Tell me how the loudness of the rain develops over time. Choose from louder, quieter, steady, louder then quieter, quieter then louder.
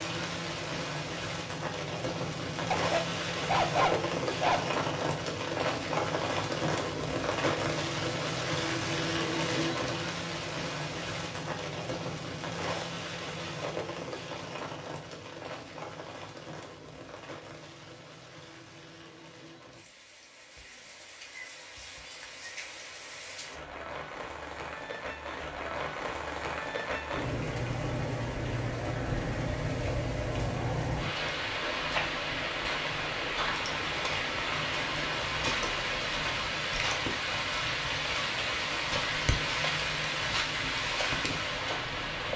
quieter then louder.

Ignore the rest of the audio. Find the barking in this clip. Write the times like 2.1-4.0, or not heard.
2.7-4.7.